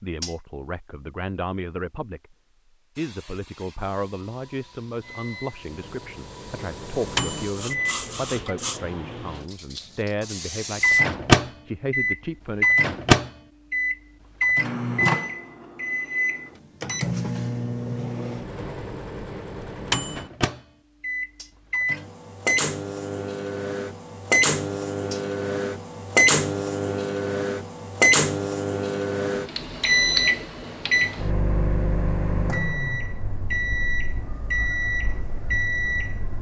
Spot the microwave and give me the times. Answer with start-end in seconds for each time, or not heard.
5.0-8.6, 10.8-36.3.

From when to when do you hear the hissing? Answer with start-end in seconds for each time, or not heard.
3.0-11.2.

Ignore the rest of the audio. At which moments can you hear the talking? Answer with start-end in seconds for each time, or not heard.
0.0-2.4, 3.0-12.8.